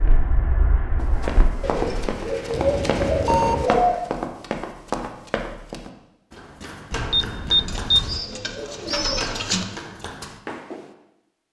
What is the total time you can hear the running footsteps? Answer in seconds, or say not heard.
10 s.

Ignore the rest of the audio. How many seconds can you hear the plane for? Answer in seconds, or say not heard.
2 s.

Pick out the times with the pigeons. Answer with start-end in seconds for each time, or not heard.
1.6-4.0, 7.7-9.7.